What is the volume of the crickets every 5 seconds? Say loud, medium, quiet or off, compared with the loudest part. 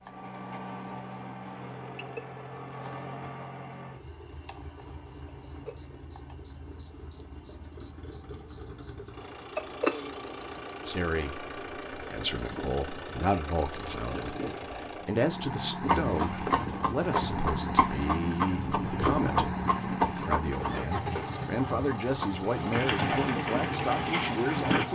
quiet, loud, quiet, quiet, quiet.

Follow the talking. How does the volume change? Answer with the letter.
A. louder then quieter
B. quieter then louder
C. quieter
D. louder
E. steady
E.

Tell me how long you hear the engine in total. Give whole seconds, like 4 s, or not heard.
25 s.